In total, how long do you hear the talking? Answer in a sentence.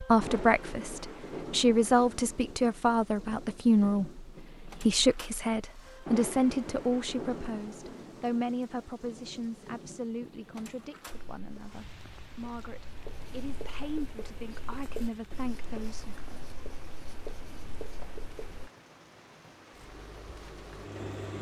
The talking can be heard for 16 seconds in total.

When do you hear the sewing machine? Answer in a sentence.
You can hear the sewing machine from 19.7 to 21.3 s.